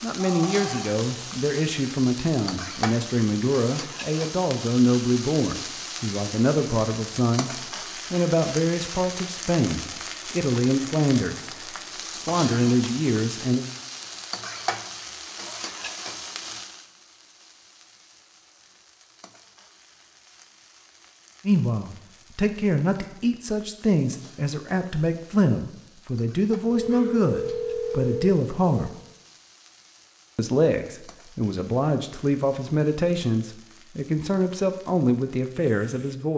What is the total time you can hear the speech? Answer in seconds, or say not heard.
26 s.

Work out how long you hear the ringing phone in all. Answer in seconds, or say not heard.
3 s.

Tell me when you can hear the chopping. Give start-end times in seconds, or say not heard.
not heard.